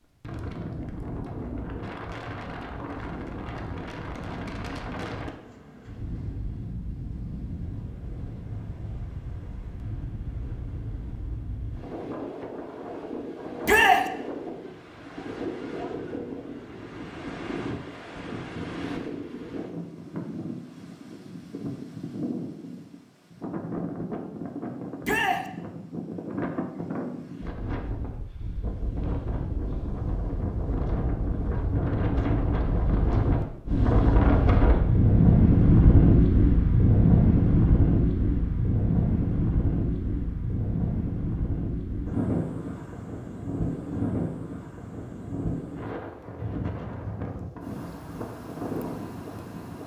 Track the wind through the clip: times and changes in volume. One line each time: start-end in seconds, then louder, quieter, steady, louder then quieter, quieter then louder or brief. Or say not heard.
0.2-49.8 louder then quieter.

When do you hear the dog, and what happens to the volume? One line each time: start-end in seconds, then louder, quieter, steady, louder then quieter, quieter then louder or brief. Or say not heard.
not heard.